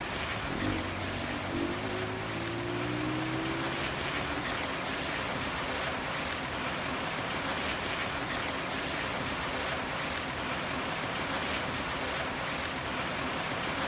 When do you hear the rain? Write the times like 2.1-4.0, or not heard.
0.0-13.8.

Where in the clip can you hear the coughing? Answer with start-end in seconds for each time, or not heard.
not heard.